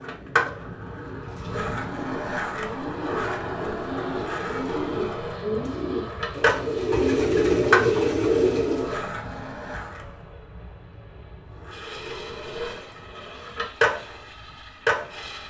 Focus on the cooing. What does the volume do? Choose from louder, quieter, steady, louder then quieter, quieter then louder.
louder.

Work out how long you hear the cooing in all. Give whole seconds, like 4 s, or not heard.
8 s.